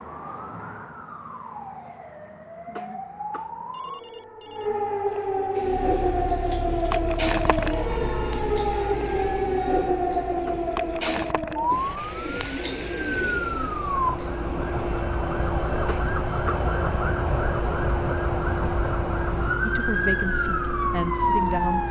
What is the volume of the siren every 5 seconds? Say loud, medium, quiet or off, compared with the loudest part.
medium, loud, loud, loud, loud.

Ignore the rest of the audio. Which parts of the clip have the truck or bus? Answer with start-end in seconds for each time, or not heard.
5.8-21.8.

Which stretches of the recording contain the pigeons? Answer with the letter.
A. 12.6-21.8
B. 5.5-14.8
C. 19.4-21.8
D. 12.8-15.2
B.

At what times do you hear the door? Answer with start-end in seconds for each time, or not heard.
not heard.